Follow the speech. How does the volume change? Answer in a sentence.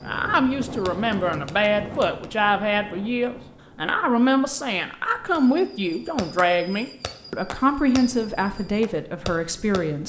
The volume of the speech stays about the same.